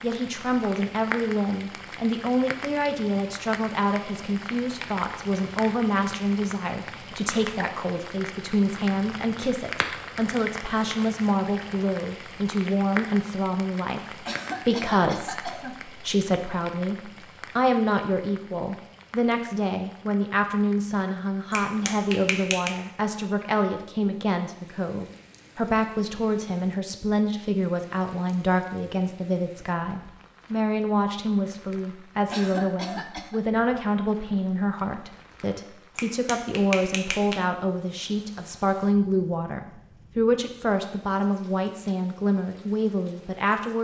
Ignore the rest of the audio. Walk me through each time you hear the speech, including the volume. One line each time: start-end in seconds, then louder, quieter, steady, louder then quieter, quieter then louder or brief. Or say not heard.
0.0-43.7 steady.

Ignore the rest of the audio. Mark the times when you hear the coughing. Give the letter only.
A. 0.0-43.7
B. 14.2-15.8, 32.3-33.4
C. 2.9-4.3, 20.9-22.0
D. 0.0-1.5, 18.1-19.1
B.